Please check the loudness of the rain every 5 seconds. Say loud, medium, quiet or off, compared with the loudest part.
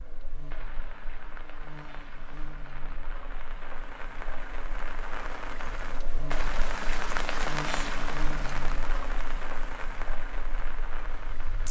medium, loud, medium.